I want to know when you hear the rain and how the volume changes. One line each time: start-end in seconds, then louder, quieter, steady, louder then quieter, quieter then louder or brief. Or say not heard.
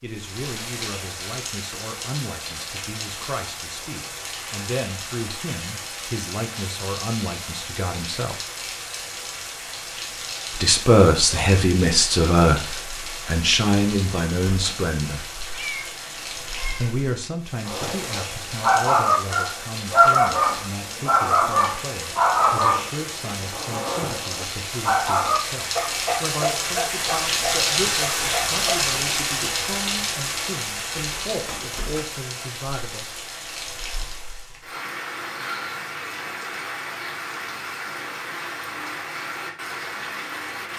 0.0-40.7 louder then quieter.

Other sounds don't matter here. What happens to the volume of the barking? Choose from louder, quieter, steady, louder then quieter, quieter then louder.
quieter.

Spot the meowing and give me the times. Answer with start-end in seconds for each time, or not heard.
15.5-16.9.